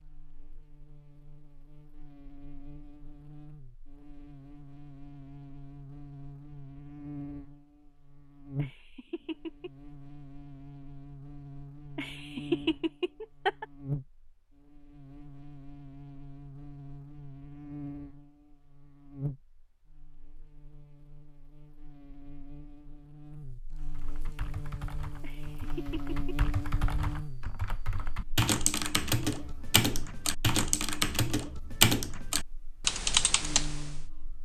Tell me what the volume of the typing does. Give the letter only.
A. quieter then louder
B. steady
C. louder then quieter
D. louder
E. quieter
D.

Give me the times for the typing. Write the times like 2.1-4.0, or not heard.
23.8-34.0.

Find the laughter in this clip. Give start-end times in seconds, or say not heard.
8.6-9.7, 11.9-13.7, 25.2-26.5.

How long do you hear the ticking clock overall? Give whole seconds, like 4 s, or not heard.
not heard.